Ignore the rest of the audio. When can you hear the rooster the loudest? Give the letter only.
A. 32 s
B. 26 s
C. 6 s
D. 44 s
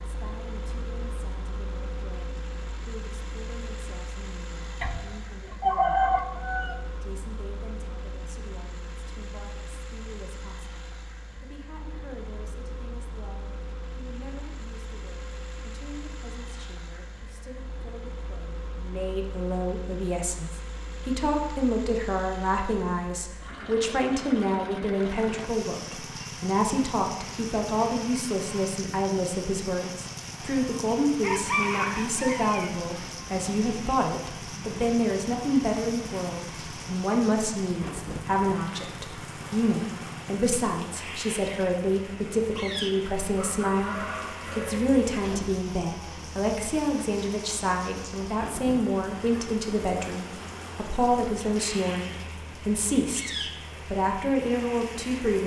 C.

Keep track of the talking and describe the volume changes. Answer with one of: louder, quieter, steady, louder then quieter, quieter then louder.
louder.